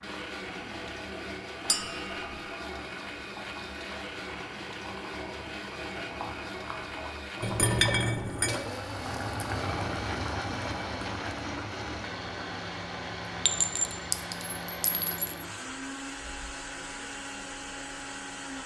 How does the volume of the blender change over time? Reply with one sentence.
The volume of the blender stays about the same.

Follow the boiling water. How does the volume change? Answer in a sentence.
The loudness of the boiling water goes up, then down.